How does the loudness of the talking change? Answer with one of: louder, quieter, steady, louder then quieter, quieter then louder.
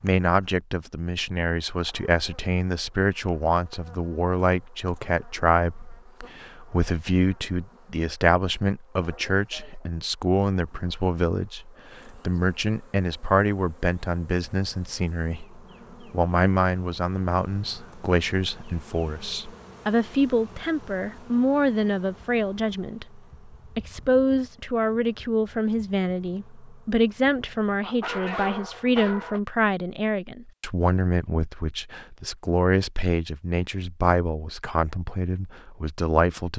steady.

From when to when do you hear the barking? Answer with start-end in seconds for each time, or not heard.
27.8-29.4.